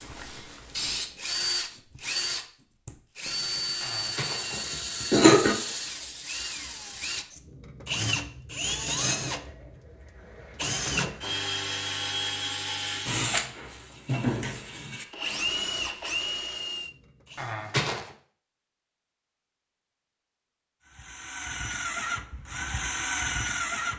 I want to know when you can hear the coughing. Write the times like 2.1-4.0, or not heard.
3.8-5.5, 17.4-18.1.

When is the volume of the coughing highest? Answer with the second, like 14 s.
5 s.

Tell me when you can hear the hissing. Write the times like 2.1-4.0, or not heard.
0.0-1.8.